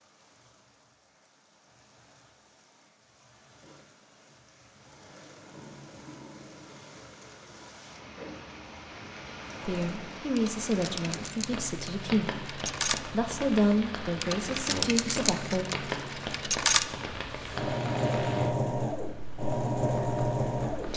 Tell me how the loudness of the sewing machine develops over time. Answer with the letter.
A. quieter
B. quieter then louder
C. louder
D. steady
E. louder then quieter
C.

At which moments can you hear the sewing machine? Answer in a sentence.
The sewing machine can be heard from 3.6 to 20.9 s.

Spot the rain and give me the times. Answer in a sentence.
You can hear the rain from 0.0 to 20.9 s.